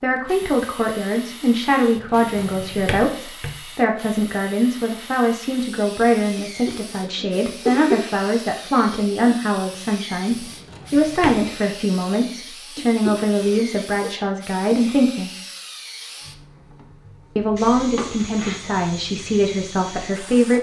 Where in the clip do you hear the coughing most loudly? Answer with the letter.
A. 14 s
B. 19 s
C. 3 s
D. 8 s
D.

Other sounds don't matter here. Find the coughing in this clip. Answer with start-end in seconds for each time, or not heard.
6.3-8.0, 12.8-14.1.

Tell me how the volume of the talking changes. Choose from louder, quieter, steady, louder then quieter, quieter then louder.
steady.